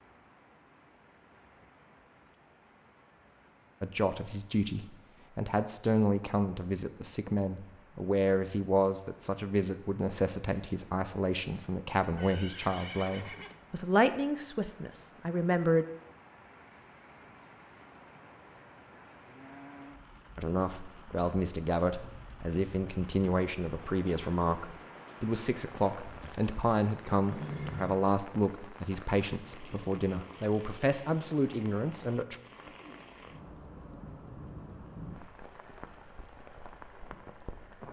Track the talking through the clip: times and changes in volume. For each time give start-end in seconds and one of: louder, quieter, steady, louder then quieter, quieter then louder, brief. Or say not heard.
3.8-15.8 steady
20.4-32.4 steady.